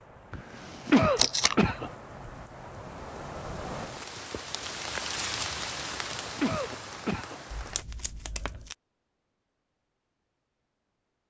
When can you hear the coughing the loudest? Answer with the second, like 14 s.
1 s.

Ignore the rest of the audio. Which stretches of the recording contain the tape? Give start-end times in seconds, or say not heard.
1.1-1.6, 7.5-8.8.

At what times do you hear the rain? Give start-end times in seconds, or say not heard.
0.0-7.8.